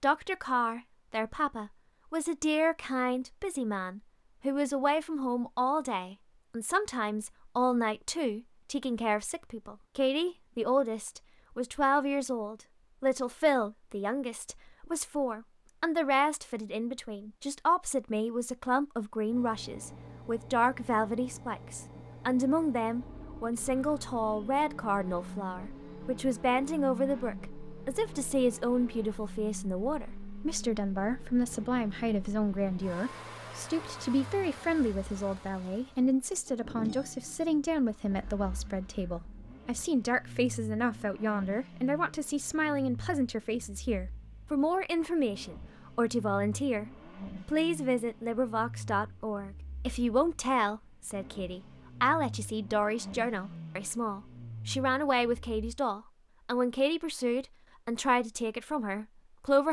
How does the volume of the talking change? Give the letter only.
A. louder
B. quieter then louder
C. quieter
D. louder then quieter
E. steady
E.